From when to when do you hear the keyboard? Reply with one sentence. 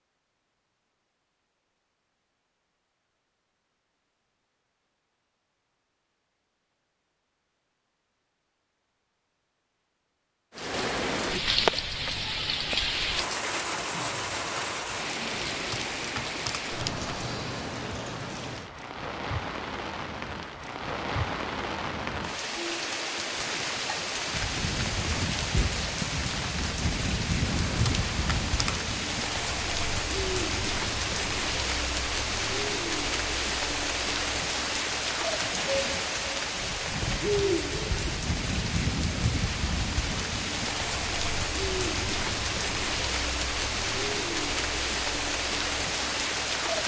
The keyboard can be heard from 15.3 to 17.6 s and from 27.4 to 28.9 s.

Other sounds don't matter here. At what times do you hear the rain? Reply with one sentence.
You can hear the rain from 10.6 to 46.8 s.